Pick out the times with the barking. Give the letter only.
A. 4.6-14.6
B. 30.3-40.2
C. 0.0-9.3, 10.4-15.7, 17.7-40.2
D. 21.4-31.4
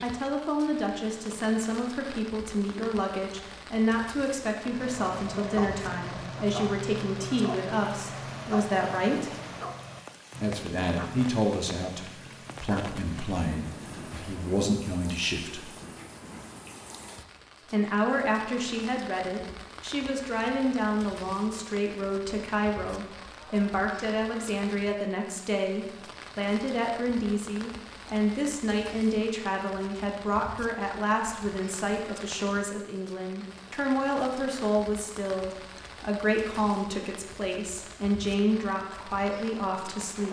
A.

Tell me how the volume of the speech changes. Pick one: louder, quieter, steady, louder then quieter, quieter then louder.
steady.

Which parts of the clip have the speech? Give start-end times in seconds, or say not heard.
0.0-9.3, 10.4-15.7, 17.7-40.2.